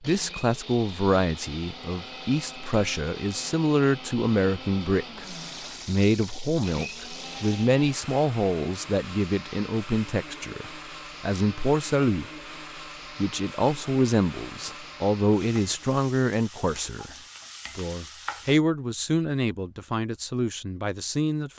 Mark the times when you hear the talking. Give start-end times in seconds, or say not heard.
0.0-12.2, 13.2-17.1, 17.8-21.5.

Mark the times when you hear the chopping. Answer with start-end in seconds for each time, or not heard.
not heard.